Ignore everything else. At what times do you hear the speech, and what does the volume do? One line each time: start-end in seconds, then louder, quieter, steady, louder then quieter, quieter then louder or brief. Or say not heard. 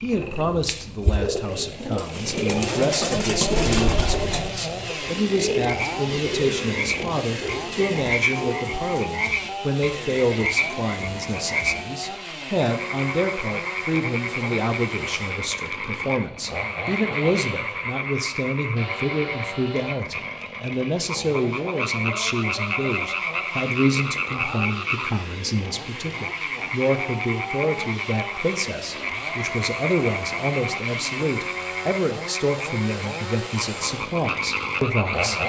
0.0-35.4 steady.